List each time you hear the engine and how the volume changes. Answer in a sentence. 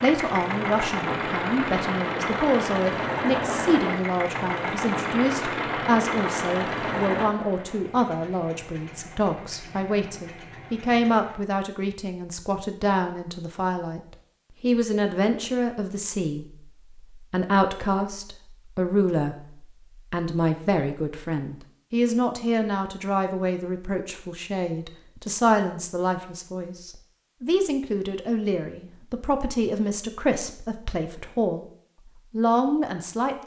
You can hear the engine from 0.0 to 11.4 s, getting quieter.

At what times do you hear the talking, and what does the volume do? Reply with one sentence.
The talking can be heard from 0.0 to 31.6 s, at a steady volume; and briefly from 32.3 to 33.4 s.